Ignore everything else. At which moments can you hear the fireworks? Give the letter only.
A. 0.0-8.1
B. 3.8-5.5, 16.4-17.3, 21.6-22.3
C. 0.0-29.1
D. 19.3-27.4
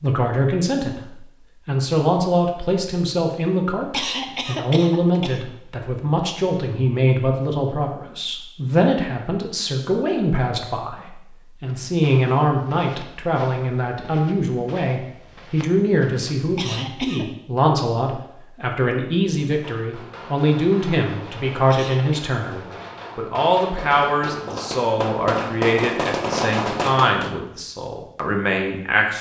D.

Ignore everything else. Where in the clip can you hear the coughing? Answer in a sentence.
You can hear the coughing from 3.8 to 5.5 s, from 16.4 to 17.3 s and from 21.6 to 22.3 s.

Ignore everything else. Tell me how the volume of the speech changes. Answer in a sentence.
The volume of the speech stays about the same.